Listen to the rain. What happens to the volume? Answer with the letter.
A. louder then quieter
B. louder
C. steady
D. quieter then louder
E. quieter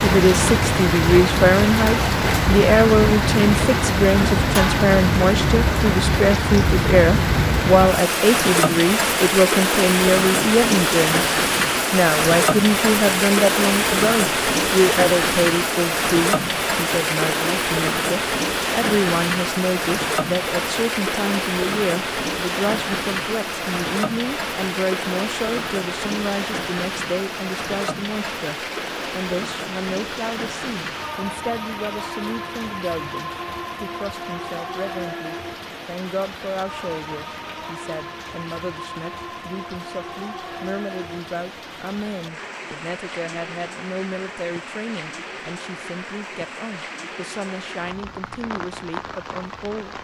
E.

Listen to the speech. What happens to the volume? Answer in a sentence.
The volume of the speech goes down.